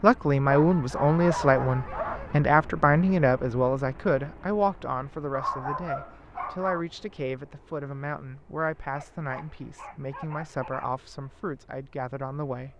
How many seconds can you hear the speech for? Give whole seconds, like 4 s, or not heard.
13 s.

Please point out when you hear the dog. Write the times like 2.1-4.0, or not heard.
0.5-2.5, 5.3-6.8, 8.9-10.9.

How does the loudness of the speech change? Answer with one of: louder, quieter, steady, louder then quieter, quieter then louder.
quieter.